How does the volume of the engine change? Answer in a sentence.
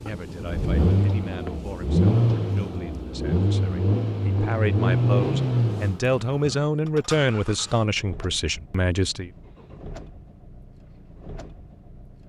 The loudness of the engine goes down.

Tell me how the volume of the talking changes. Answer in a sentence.
The loudness of the talking goes up.